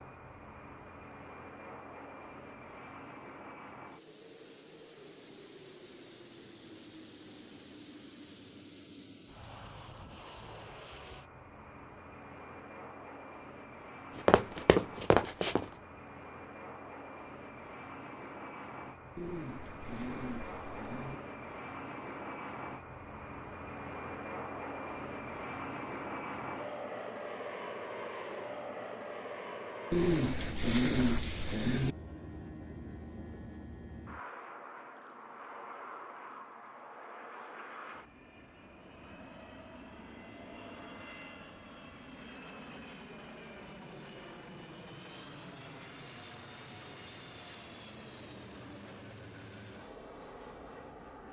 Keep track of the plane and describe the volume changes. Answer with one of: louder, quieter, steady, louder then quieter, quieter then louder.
louder then quieter.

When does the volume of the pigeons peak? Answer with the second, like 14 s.
31 s.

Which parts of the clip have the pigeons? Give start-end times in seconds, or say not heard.
19.1-21.2, 29.9-31.9.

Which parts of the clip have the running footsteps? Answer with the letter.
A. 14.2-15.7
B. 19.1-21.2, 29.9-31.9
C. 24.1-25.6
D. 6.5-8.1
A.